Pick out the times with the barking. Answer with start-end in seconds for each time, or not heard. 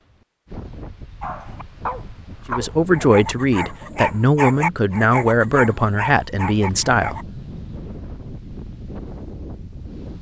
1.2-7.2.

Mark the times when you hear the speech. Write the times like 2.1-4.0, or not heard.
2.5-7.2.